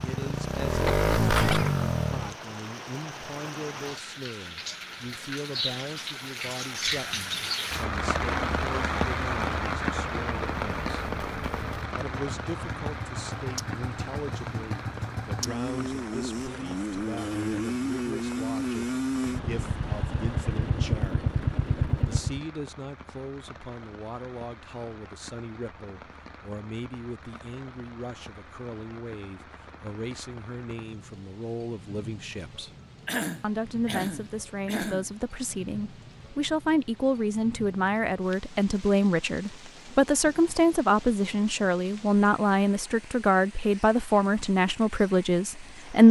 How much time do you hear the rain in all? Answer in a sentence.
The rain can be heard for 46 seconds in total.